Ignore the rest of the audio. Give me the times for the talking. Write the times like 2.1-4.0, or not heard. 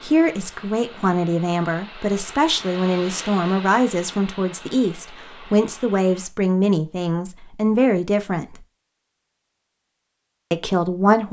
0.0-8.7, 10.5-11.2.